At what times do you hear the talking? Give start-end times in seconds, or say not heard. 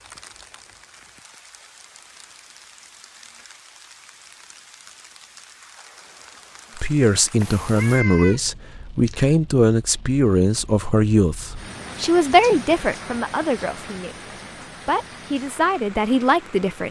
6.8-16.8.